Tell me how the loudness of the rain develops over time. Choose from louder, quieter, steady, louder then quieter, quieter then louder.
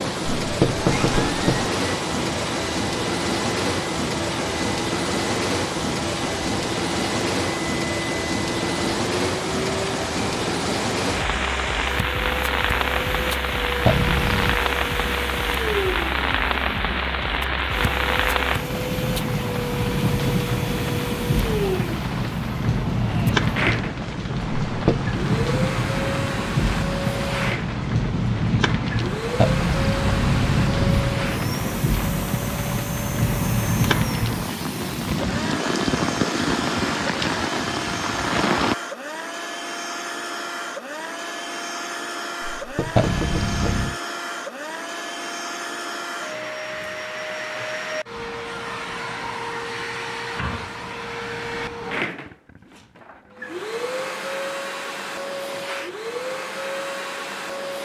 steady.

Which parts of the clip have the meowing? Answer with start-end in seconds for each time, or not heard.
13.8-14.6, 29.4-31.1, 43.0-44.0.